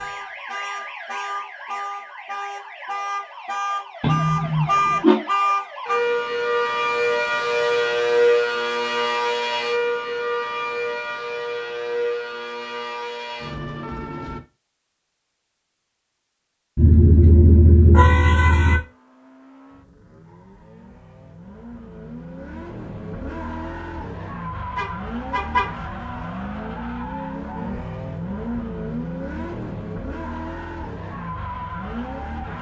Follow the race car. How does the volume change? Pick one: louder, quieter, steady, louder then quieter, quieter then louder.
louder.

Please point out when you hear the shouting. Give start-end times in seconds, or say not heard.
not heard.